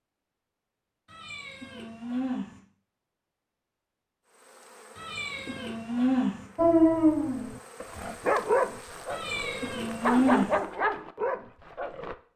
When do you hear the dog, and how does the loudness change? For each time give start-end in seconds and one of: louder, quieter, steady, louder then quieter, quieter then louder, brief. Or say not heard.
6.5-12.2 quieter then louder.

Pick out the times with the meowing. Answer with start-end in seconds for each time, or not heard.
1.1-2.6, 5.0-6.5, 9.1-10.6.